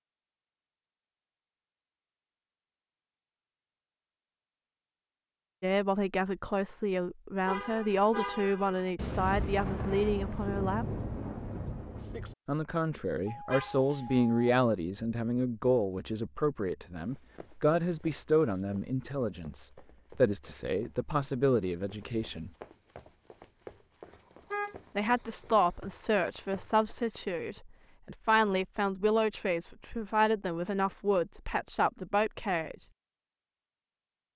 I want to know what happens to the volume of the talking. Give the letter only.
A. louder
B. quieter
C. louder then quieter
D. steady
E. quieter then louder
D.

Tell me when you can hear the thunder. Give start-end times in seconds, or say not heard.
8.9-12.3.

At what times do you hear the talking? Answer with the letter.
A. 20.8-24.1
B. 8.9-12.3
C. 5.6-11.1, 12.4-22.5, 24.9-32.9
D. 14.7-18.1
C.